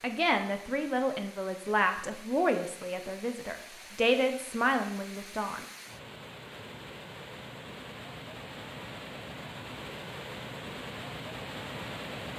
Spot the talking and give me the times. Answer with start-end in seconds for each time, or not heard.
0.0-5.6.